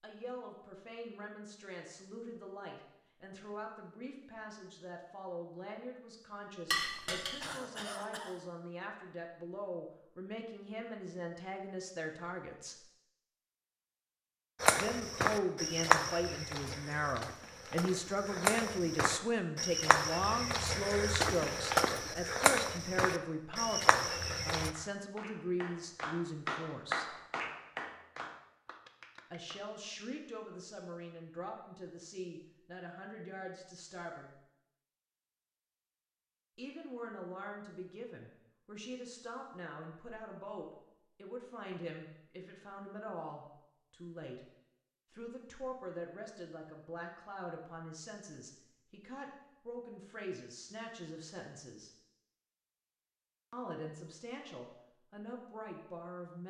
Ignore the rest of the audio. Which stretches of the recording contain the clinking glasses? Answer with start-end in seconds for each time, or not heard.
6.7-7.3.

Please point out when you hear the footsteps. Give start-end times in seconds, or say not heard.
14.6-24.7.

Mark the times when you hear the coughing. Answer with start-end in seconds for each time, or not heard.
7.0-8.4.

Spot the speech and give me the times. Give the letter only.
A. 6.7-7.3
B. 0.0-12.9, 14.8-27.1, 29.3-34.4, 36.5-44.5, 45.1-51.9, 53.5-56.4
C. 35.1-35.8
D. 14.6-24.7
B.